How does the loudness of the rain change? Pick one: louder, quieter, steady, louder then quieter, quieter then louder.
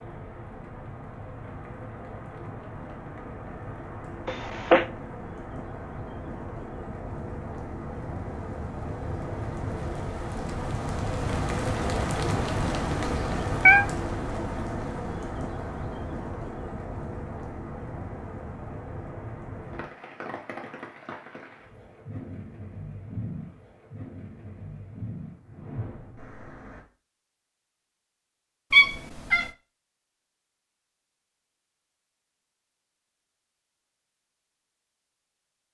louder then quieter.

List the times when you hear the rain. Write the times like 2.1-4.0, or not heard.
0.0-26.9.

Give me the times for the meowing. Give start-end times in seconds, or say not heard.
4.2-4.8, 13.1-13.8, 28.7-29.5.